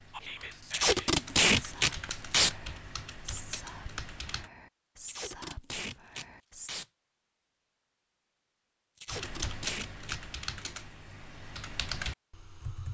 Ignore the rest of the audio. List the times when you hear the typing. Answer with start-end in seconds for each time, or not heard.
0.0-4.5, 9.1-12.8.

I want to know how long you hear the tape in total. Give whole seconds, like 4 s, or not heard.
5 s.